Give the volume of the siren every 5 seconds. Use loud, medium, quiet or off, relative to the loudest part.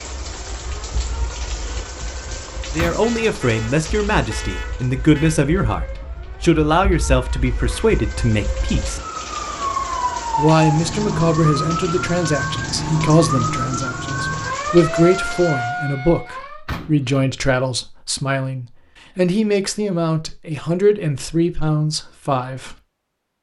quiet, medium, loud, loud, off.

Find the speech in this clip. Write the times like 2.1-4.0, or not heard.
2.7-9.0, 10.3-22.8.